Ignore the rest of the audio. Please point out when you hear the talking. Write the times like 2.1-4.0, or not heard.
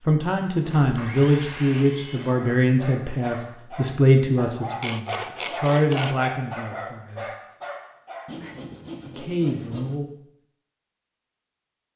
0.1-7.2, 9.1-10.1.